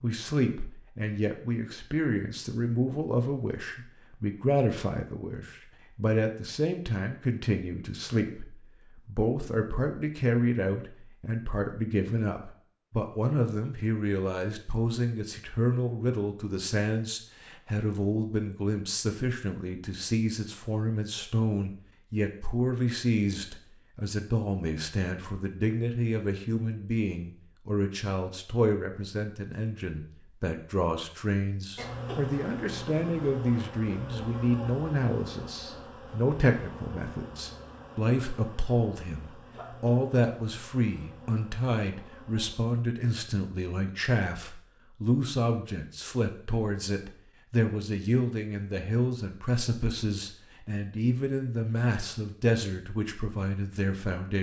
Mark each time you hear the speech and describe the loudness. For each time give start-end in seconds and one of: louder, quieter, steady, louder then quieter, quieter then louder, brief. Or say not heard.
0.0-54.3 steady.